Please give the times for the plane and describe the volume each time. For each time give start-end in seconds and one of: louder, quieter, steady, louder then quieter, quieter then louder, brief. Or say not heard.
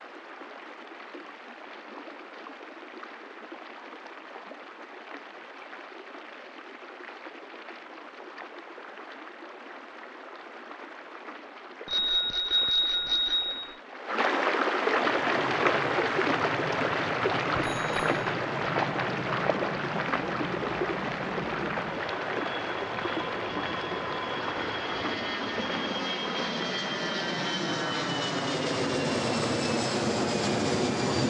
14.8-31.2 louder.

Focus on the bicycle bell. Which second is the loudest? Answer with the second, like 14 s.
13 s.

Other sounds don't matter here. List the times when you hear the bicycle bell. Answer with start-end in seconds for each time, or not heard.
11.8-13.8, 17.6-18.1.